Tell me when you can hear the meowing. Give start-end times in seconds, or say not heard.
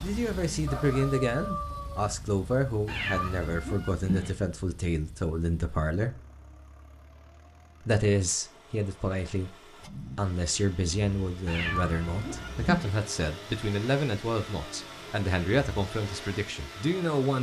2.9-4.3, 11.4-12.9.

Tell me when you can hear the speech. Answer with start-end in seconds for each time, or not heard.
0.0-6.2, 7.8-17.3.